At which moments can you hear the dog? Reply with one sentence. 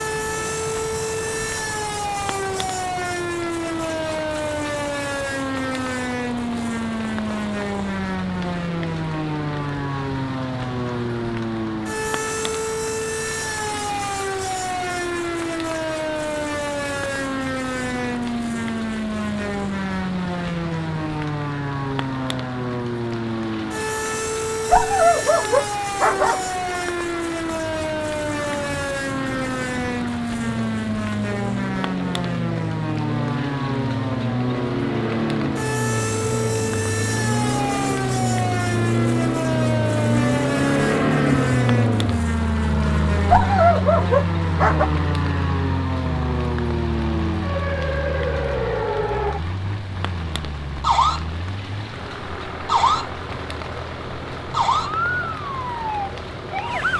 You can hear the dog from 24.6 to 26.4 s and from 43.2 to 44.9 s.